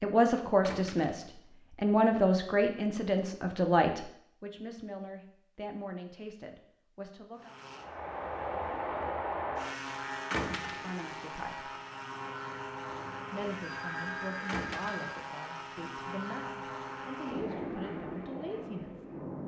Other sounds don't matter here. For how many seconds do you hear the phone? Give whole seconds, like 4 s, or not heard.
2 s.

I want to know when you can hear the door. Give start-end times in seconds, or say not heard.
0.6-1.4, 10.3-11.1, 14.4-15.1.